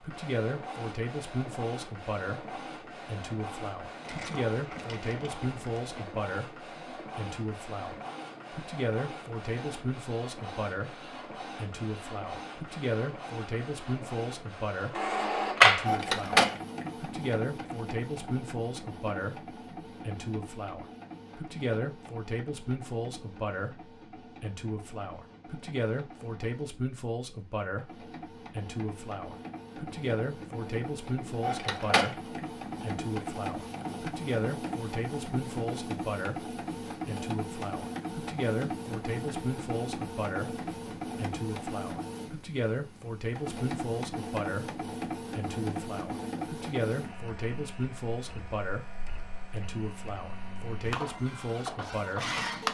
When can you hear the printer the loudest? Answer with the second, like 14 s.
16 s.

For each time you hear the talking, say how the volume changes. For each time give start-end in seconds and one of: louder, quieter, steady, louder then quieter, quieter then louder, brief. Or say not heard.
0.0-52.4 steady.